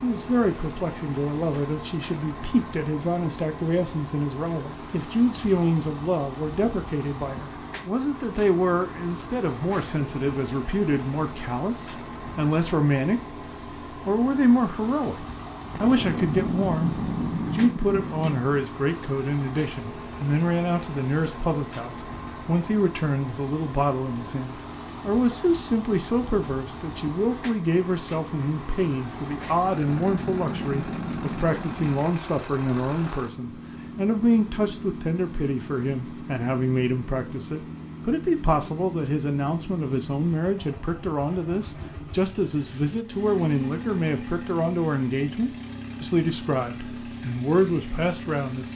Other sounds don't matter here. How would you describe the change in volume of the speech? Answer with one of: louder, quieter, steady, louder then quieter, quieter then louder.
steady.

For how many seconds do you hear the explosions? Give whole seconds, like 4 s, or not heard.
5 s.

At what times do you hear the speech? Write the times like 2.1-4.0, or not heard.
0.0-48.7.